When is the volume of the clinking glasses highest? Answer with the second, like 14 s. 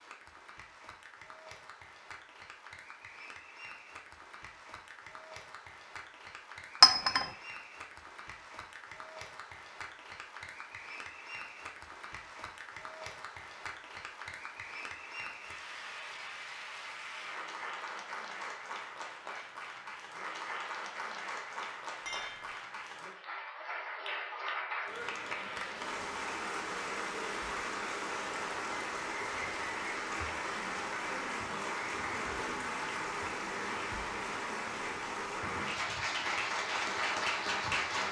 7 s.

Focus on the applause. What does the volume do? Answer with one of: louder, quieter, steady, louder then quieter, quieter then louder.
louder.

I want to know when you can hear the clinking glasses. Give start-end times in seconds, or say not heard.
6.8-7.2, 22.1-22.5.